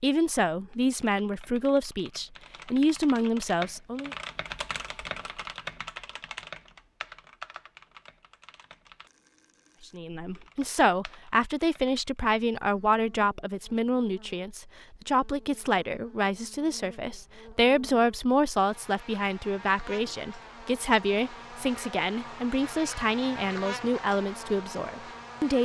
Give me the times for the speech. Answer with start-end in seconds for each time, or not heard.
0.0-4.1, 9.9-25.5.